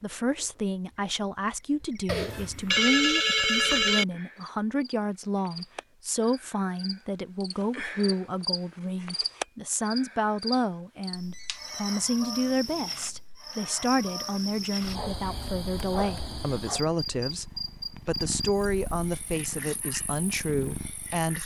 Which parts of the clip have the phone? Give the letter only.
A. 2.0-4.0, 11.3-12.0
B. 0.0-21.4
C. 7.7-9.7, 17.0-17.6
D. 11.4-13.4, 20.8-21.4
A.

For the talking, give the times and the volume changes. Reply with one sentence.
The talking can be heard from 0.0 to 21.4 s, at a steady volume.